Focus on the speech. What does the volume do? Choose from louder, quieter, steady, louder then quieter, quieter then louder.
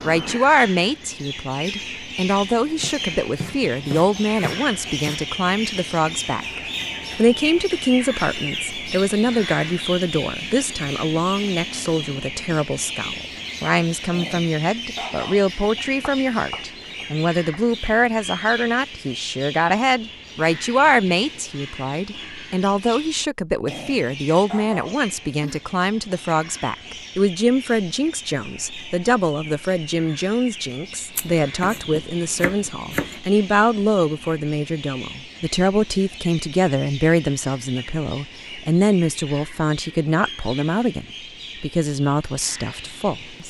steady.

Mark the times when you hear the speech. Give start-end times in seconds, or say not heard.
0.0-43.4.